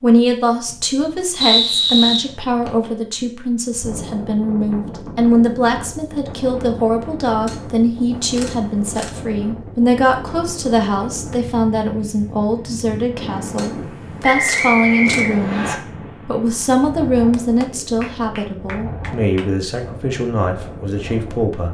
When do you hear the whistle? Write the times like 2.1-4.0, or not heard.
1.4-2.9, 14.2-15.8.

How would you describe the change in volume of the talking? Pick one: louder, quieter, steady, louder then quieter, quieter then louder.
steady.